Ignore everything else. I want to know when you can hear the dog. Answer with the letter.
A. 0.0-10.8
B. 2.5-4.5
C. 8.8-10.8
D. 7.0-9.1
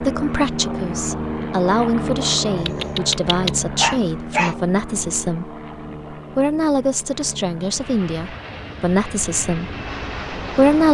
B.